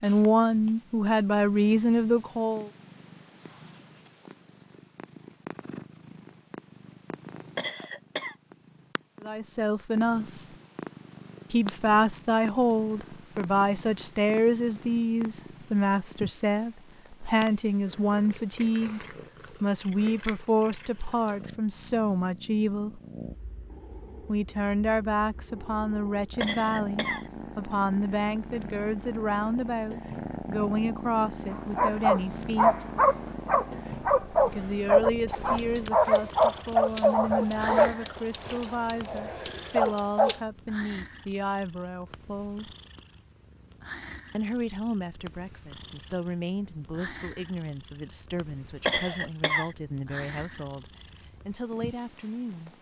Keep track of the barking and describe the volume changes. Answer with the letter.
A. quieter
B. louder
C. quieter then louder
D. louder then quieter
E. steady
A.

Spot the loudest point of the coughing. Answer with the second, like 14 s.
49 s.